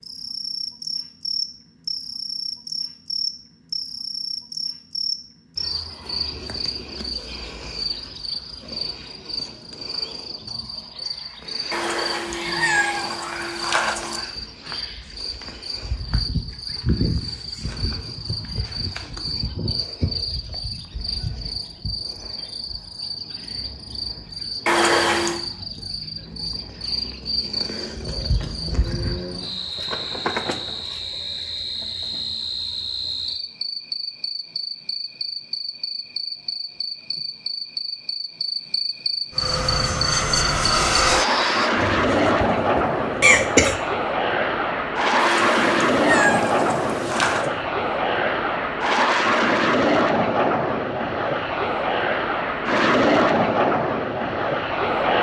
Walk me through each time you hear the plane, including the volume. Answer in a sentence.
The plane can be heard from 39.3 to 55.1 s, at a steady volume.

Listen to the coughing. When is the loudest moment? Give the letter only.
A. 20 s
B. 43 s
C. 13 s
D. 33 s
B.